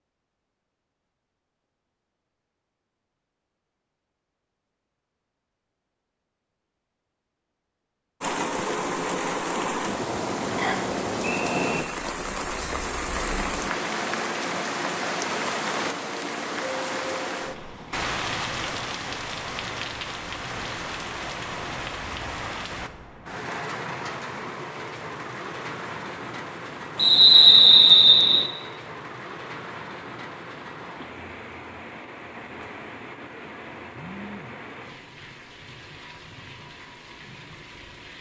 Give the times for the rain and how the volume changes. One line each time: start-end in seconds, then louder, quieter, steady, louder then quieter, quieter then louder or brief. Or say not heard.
8.2-38.1 quieter.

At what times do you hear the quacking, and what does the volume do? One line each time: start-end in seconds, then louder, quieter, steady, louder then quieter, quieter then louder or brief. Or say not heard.
not heard.